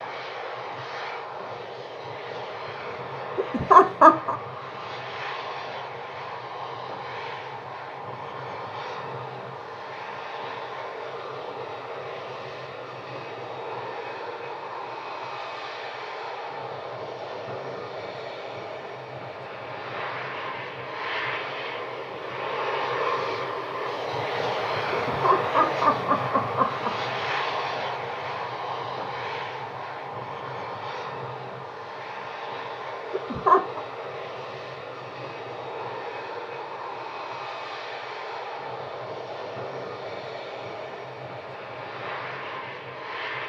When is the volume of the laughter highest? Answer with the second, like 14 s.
4 s.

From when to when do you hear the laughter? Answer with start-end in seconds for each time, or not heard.
3.4-4.3, 24.9-26.9, 33.1-33.8.